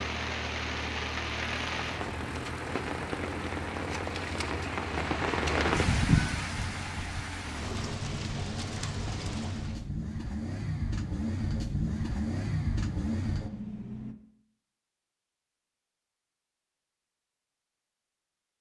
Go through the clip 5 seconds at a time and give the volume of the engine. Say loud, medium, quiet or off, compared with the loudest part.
medium, medium, loud, off.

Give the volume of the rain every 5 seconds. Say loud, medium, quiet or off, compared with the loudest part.
loud, loud, off, off.